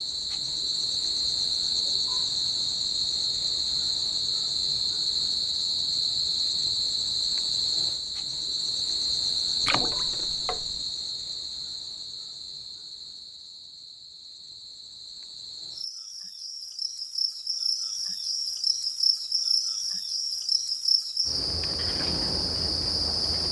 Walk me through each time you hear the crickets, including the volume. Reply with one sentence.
The crickets can be heard from 0.0 to 23.4 s, getting quieter then louder.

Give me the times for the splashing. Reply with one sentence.
You can hear the splashing from 9.7 to 10.8 s.